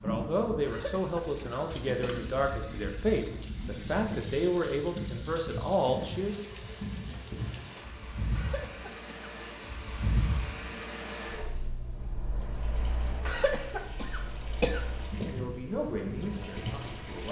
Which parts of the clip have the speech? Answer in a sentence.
The speech can be heard from 0.0 to 6.5 s and from 15.2 to 17.2 s.